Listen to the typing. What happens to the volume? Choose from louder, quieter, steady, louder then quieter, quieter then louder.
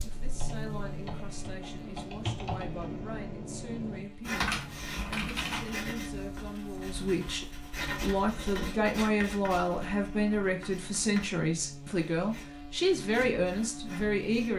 louder.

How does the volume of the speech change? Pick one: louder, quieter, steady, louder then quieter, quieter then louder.
louder.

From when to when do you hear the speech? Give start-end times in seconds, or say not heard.
0.0-14.5.